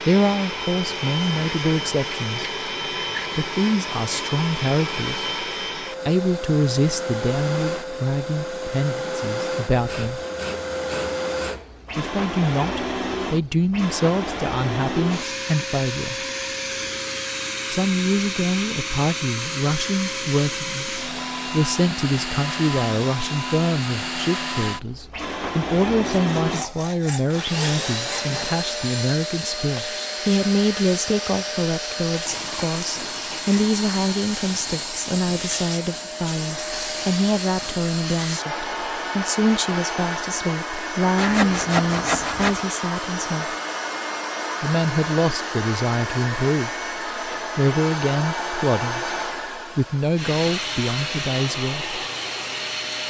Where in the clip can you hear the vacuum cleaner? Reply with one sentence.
The vacuum cleaner can be heard from 0.0 to 53.0 s.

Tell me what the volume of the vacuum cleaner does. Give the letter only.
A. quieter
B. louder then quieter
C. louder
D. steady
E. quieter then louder
D.